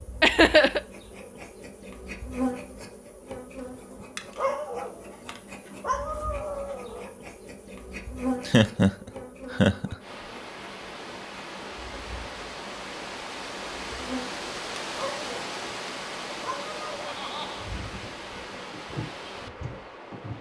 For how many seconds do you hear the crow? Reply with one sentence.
The crow can't be heard in this clip.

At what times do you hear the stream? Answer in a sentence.
The stream can be heard from 10.0 to 20.3 s.